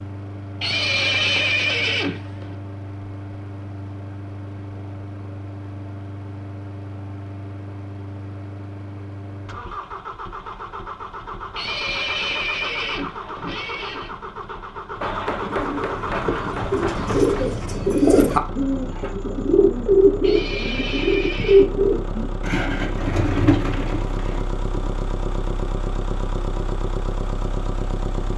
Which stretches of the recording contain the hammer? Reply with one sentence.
You can hear the hammer from 15.0 to 17.4 s.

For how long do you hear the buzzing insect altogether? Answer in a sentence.
The buzzing insect can't be heard in this clip.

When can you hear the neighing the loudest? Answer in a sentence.
The volume of the neighing peaks at 1 second.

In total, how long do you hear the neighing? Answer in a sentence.
The neighing can be heard for 6 seconds in total.